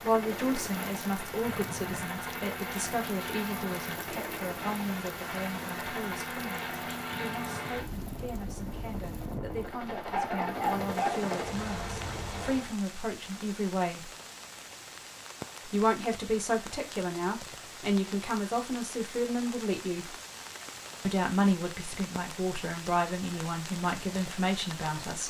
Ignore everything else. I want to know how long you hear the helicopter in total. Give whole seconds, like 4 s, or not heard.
13 s.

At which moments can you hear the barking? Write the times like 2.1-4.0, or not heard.
10.1-11.2.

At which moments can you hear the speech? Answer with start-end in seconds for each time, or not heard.
0.0-14.1, 15.7-20.1, 21.0-25.2.